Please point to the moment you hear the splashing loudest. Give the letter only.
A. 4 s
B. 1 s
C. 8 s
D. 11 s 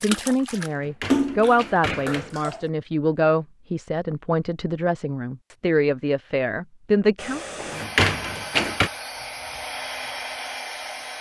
B.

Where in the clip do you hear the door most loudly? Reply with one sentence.
The volume of the door peaks at 8 seconds.